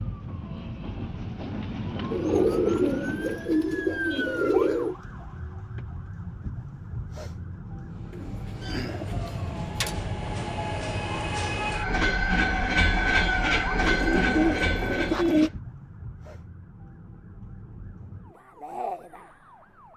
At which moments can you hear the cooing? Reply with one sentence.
The cooing can be heard from 2.1 to 5.0 s, from 8.1 to 10.1 s and from 13.8 to 15.5 s.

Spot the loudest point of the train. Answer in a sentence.
The loudest moment of the train is at 13 seconds.